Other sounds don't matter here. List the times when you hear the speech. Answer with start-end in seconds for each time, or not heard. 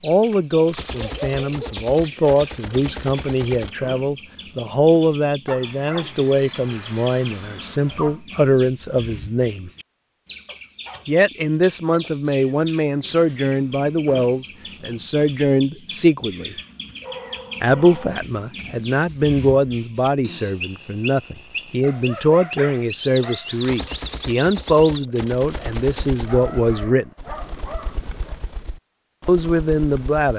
0.0-9.7, 11.1-16.6, 17.6-27.1, 29.2-30.3.